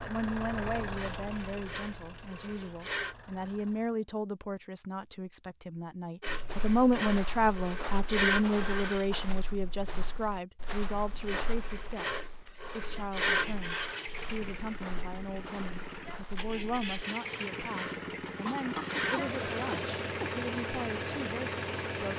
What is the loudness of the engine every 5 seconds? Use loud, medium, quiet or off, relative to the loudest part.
medium, off, medium, loud, loud.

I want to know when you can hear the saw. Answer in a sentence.
You can hear the saw from 0.9 to 3.1 s, from 6.2 to 9.1 s, from 11.2 to 14.1 s and from 17.0 to 19.7 s.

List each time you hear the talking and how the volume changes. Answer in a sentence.
The talking can be heard from 0.0 to 22.1 s, getting louder then quieter.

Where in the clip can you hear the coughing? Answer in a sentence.
You can hear the coughing from 18.4 to 20.3 s.